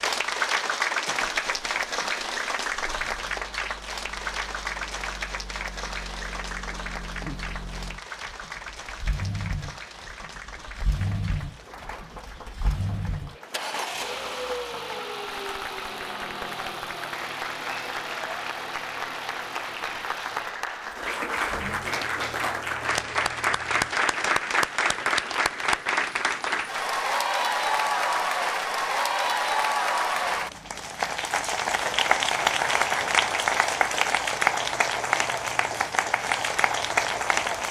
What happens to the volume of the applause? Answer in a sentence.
The loudness of the applause goes down, then up.